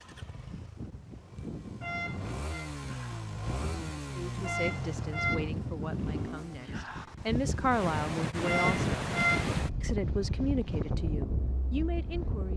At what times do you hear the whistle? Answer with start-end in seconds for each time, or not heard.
not heard.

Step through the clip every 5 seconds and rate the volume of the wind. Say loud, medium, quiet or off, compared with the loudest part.
medium, loud, loud.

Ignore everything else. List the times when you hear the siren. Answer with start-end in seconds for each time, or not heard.
not heard.